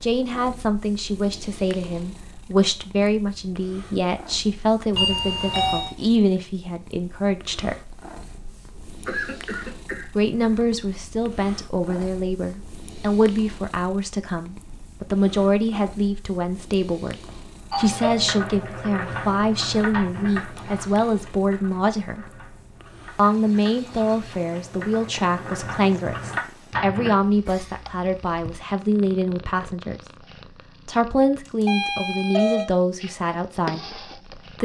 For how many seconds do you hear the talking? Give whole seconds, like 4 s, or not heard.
31 s.